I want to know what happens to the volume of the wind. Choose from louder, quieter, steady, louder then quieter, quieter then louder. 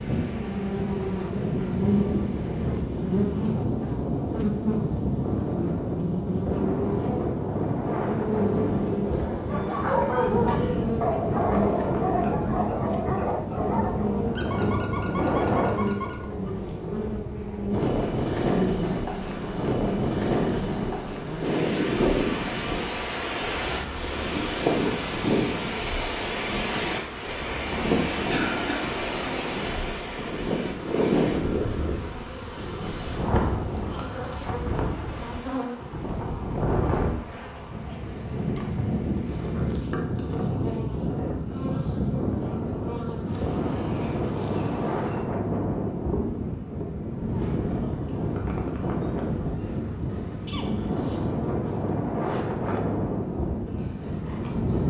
steady.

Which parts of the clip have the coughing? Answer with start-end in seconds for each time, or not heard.
10.4-10.9, 28.2-28.9, 50.5-51.3.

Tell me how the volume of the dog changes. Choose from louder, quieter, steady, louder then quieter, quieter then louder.
quieter.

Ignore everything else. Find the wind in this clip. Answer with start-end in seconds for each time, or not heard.
0.0-54.8.